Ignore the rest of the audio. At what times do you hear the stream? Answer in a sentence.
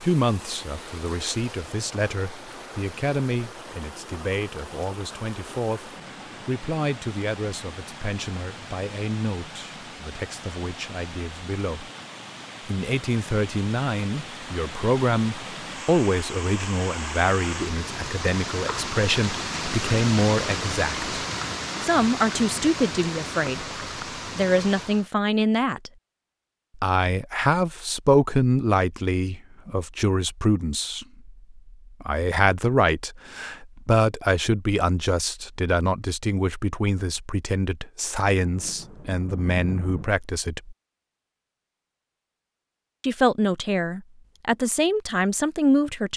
The stream can be heard from 0.0 to 25.1 s.